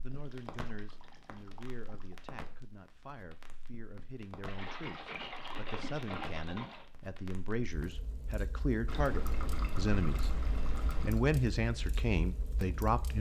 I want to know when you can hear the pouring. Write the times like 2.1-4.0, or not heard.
0.1-2.1, 4.5-6.8, 8.8-11.2.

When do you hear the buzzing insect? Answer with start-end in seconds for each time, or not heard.
not heard.